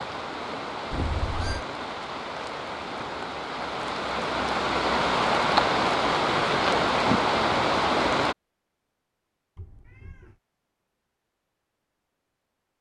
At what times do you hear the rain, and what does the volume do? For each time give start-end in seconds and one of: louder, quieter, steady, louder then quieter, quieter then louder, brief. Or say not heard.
0.0-8.3 louder.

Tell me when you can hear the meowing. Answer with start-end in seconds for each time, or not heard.
0.9-1.6, 9.6-10.4.